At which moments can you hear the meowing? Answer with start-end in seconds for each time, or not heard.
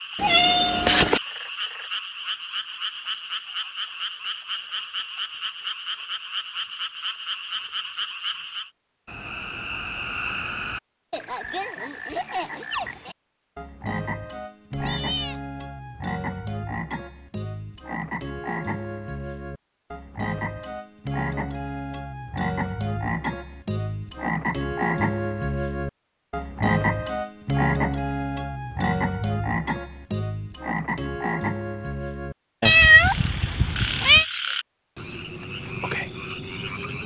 0.1-1.2, 14.8-15.4, 32.6-34.2.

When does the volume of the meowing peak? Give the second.
33 s.